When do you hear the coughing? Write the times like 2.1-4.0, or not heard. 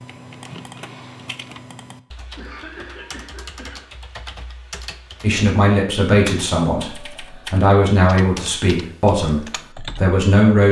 2.4-3.9.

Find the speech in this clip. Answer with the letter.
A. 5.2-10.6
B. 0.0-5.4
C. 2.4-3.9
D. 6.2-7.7
A.